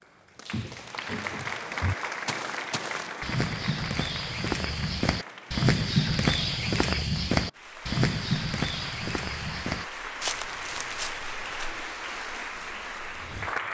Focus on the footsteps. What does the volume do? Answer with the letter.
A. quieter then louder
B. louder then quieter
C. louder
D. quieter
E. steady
B.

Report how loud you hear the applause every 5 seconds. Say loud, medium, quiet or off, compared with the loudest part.
loud, medium, loud.